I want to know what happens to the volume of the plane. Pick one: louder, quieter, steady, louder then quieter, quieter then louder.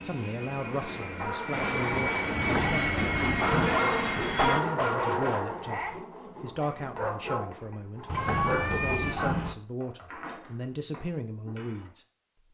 louder.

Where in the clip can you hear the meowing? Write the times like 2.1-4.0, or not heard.
8.2-9.2.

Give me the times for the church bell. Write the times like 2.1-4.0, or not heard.
not heard.